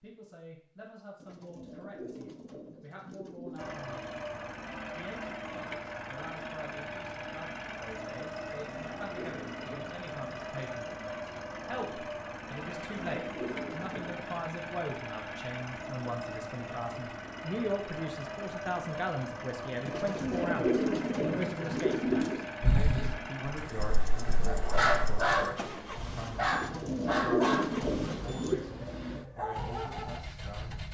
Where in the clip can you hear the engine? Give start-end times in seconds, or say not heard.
3.5-30.8.